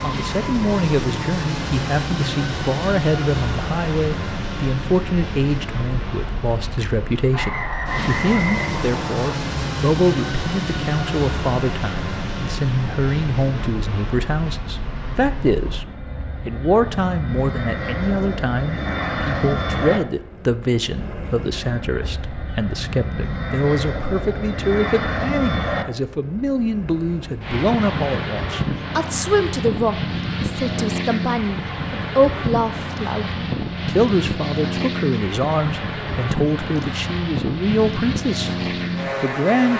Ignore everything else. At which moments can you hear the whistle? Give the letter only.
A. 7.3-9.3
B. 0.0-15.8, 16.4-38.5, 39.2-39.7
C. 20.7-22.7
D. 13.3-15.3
A.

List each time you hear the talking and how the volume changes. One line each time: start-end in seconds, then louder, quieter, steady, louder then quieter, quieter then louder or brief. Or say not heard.
0.0-15.8 steady
16.4-38.5 steady
39.2-39.7 brief.